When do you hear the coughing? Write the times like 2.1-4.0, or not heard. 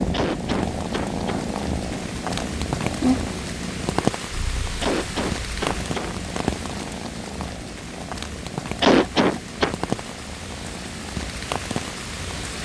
0.1-1.4, 4.8-6.2, 8.8-9.8.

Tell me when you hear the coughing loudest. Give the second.
9 s.